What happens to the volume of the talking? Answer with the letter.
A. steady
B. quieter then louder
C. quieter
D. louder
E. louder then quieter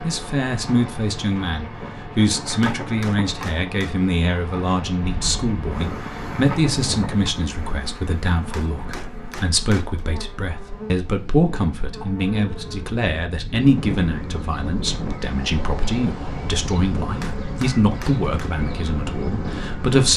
A.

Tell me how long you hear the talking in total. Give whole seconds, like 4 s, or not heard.
20 s.